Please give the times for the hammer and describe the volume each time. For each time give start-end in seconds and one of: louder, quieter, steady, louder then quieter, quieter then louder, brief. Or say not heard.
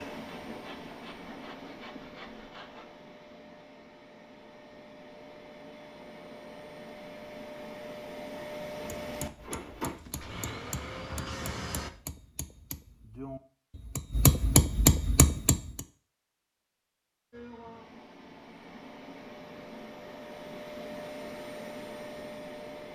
9.0-15.8 louder.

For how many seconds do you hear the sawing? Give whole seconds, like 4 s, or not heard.
3 s.